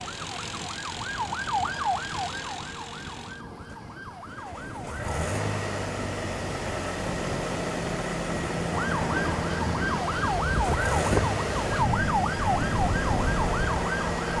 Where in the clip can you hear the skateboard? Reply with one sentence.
The skateboard can't be heard in this clip.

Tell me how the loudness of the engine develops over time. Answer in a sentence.
The volume of the engine goes up.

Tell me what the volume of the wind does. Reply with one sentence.
The loudness of the wind goes up.